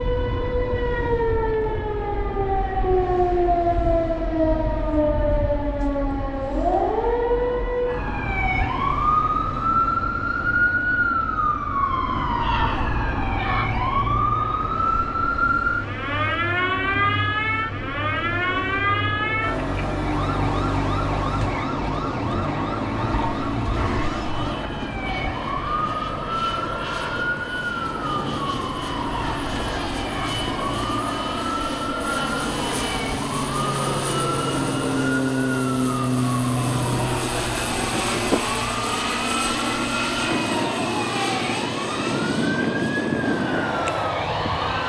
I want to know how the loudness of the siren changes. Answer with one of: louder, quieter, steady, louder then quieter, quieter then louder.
quieter.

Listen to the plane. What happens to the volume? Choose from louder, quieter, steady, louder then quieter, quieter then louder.
louder.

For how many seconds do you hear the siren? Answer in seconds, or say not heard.
45 s.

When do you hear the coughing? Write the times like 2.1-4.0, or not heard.
not heard.